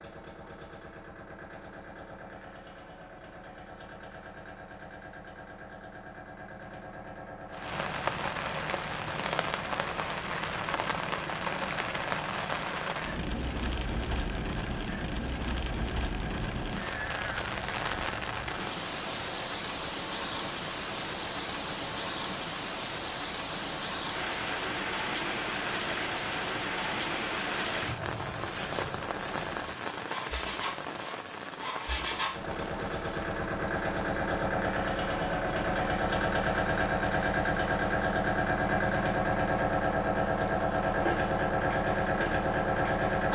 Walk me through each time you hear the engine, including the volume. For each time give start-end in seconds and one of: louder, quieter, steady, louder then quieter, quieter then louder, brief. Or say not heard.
0.0-43.3 louder.